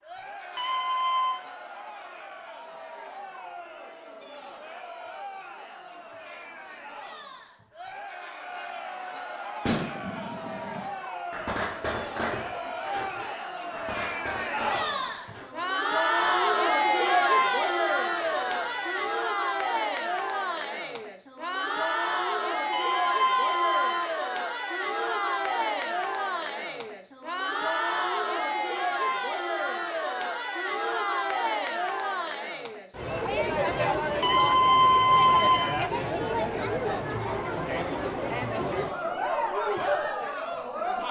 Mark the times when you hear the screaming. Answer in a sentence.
The screaming can be heard from 0.6 to 1.4 s, from 22.7 to 24.1 s and from 34.2 to 35.8 s.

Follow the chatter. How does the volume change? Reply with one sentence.
The volume of the chatter goes up.